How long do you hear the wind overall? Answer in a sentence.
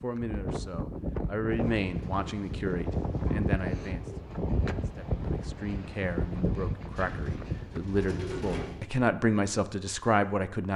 The wind can be heard for 8 seconds in total.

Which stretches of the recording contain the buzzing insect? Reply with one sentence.
The buzzing insect can't be heard in this clip.